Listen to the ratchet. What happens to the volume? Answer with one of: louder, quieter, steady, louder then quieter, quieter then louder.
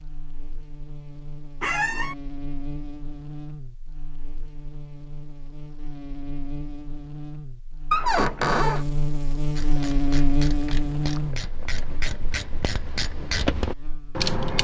louder.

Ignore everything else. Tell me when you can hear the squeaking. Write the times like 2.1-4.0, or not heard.
1.6-2.1, 7.9-8.8.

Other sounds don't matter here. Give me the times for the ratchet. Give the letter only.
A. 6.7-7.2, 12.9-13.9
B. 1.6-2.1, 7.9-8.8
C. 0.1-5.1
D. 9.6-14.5
D.